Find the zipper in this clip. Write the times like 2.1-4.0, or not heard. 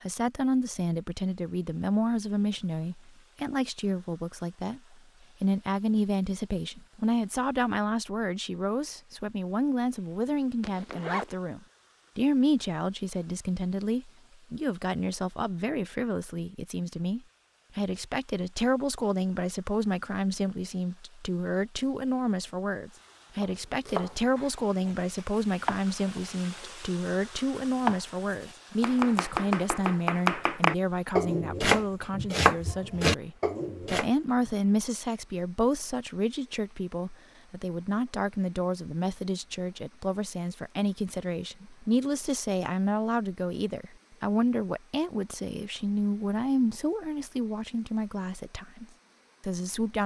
10.6-11.3.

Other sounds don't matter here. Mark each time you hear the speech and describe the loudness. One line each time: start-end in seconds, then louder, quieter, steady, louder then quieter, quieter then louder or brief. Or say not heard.
0.0-50.0 steady.